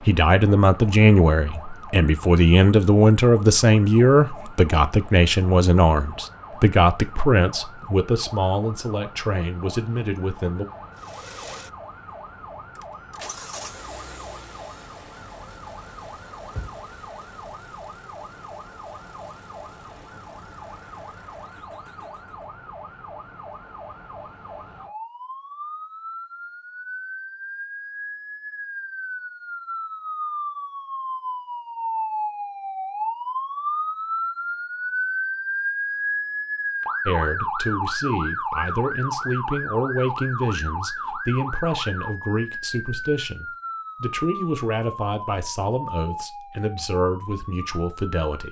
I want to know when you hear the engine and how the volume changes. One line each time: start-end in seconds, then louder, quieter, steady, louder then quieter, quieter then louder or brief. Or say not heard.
10.9-22.4 quieter.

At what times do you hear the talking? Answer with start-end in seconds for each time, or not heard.
0.1-10.7, 37.0-48.4.